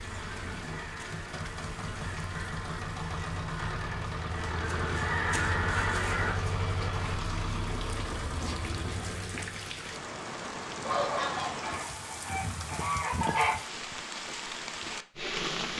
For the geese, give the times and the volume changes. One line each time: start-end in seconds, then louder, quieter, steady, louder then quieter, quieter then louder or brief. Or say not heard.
0.0-6.3 louder
10.8-13.6 brief.